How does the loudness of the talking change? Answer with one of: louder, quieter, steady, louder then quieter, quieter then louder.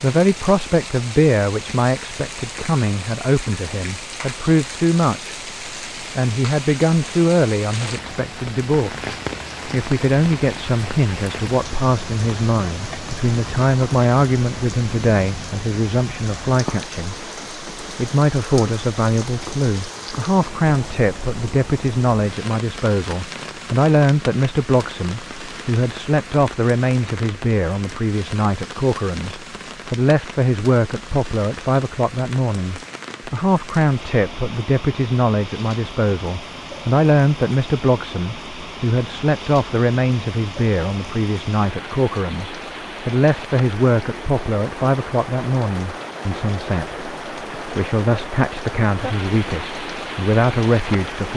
steady.